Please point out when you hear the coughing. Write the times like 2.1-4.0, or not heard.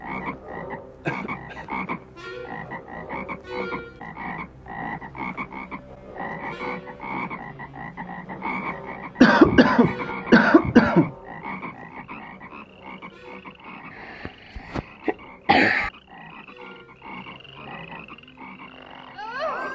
1.1-1.6, 9.2-11.1, 14.2-15.9.